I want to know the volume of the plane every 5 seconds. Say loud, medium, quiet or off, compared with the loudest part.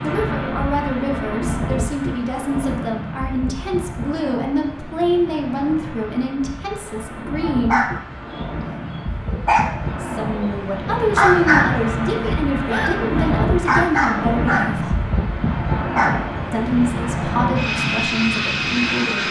medium, medium, loud, loud.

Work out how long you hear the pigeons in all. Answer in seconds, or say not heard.
not heard.